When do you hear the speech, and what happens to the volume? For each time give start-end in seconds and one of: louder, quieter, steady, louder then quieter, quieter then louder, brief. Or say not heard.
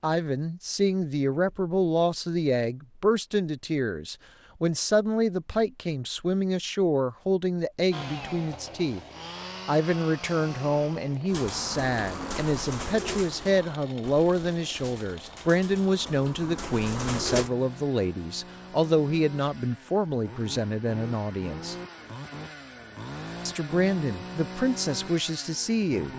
0.0-9.0 steady
9.7-21.8 steady
23.4-26.1 brief.